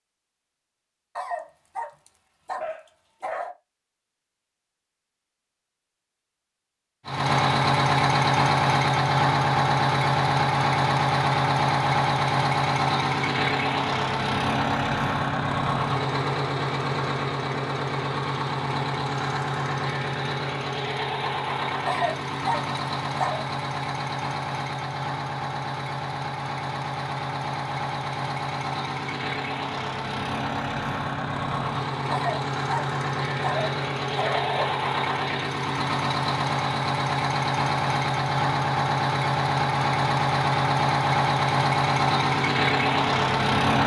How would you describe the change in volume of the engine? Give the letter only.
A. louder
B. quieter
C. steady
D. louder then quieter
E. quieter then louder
E.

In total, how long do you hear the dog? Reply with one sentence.
You can hear the dog for 7 seconds altogether.